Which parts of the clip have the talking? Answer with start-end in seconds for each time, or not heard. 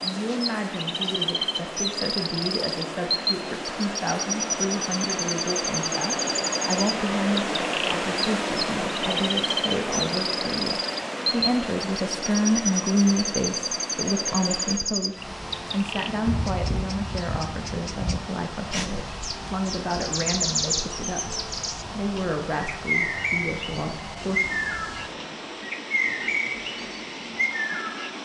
0.0-24.4.